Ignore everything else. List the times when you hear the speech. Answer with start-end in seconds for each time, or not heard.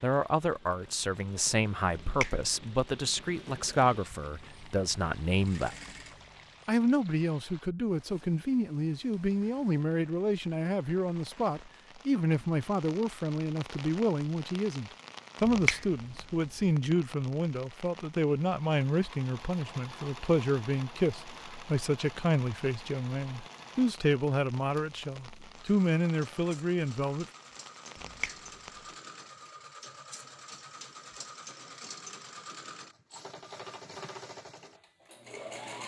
0.0-5.8, 6.7-27.2.